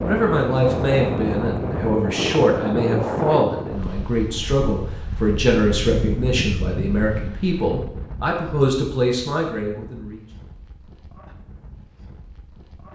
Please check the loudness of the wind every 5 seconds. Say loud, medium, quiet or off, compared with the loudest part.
loud, medium, quiet.